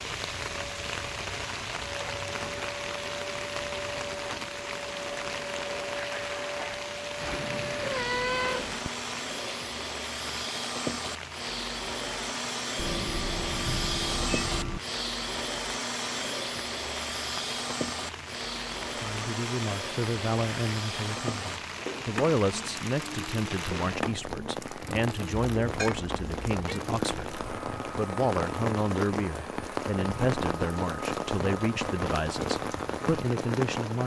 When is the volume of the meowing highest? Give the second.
8 s.